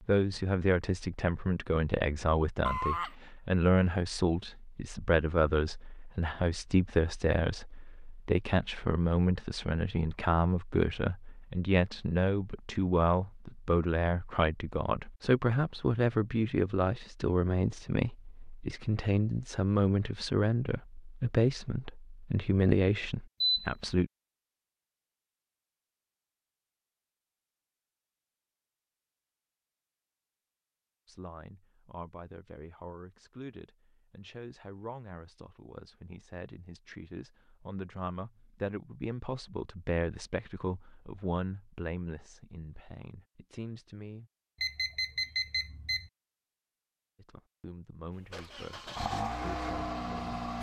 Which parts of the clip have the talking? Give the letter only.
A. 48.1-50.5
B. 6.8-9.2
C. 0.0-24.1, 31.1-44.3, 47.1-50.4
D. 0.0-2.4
C.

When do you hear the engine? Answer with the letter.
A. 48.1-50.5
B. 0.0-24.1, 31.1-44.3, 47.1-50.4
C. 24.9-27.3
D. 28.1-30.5
A.